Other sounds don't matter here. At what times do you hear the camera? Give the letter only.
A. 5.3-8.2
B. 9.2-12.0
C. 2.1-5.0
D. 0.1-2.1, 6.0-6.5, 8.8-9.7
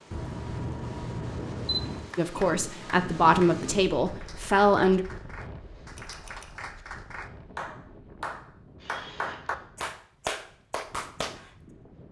D.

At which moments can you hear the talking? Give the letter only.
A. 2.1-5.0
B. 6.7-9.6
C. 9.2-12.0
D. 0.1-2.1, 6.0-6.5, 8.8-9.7
A.